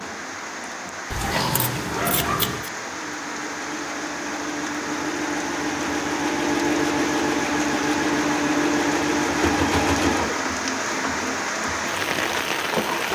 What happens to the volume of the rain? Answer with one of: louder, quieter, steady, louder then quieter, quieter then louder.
louder.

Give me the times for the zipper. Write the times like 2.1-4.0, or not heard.
1.8-2.4.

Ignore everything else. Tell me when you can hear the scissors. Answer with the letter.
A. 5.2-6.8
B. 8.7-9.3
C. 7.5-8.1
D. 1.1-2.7
D.